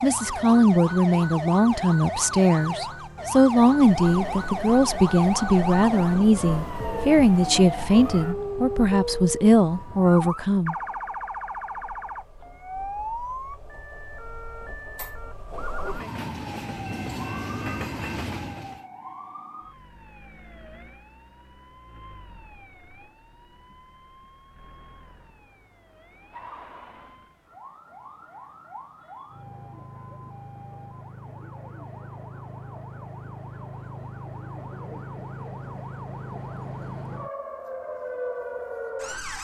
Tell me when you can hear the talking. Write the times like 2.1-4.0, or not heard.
0.0-10.8.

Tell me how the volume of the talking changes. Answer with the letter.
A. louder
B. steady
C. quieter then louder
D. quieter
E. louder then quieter
B.